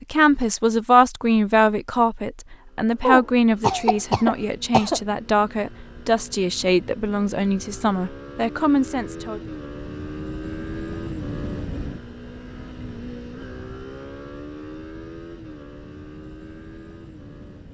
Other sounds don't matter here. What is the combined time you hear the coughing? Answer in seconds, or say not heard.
2 s.